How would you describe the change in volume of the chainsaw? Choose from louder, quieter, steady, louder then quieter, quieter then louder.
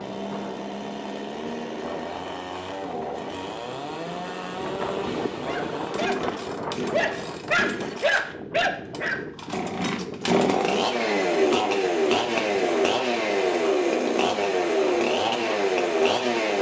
louder.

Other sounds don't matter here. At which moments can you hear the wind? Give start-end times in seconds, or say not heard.
0.0-16.5.